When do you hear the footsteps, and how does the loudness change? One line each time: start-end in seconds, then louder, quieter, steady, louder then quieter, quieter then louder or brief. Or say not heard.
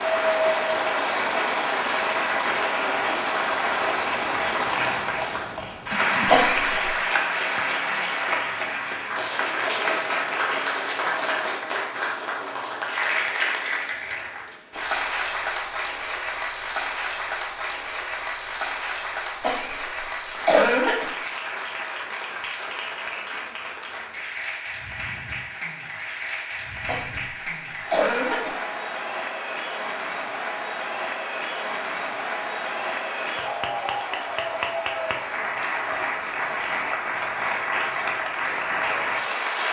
not heard.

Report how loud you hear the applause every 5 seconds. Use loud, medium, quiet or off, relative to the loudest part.
loud, loud, loud, medium, medium, medium, medium, loud.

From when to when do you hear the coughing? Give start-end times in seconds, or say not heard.
6.2-6.8, 19.4-21.1, 26.9-28.5.